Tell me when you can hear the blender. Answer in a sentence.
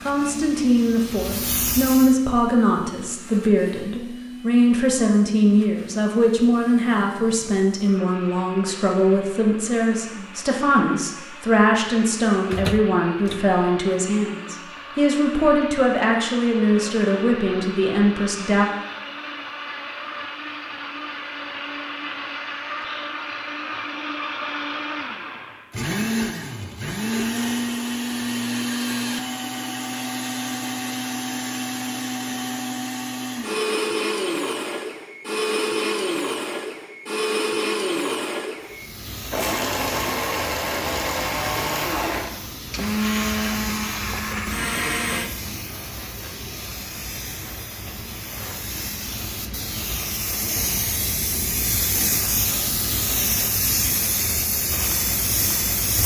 You can hear the blender from 0.0 to 45.3 s.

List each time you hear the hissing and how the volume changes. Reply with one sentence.
You can hear the hissing briefly from 0.0 to 2.1 s; and from 38.6 to 56.0 s, getting louder.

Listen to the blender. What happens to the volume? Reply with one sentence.
The volume of the blender goes up.